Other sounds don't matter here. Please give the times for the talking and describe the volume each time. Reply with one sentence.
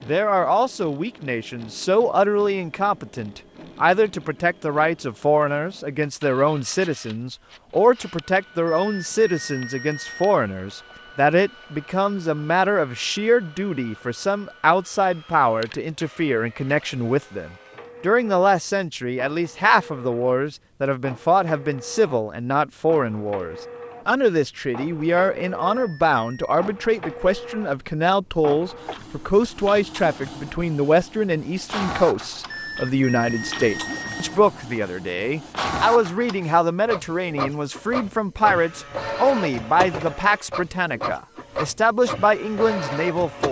The talking can be heard from 0.0 to 43.4 s, at a steady volume.